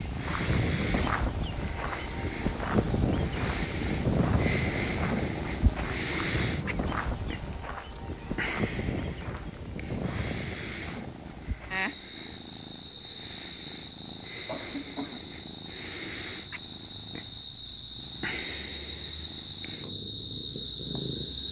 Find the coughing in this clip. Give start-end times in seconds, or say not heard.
14.4-15.3.